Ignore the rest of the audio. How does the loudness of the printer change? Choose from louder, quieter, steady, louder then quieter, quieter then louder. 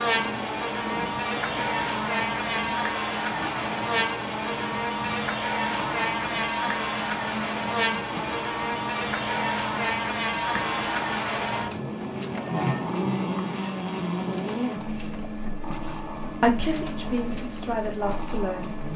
steady.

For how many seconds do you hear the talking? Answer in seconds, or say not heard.
3 s.